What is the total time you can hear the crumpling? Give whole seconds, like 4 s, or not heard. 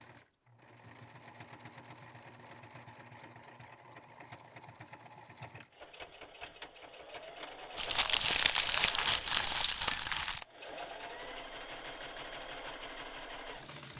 3 s.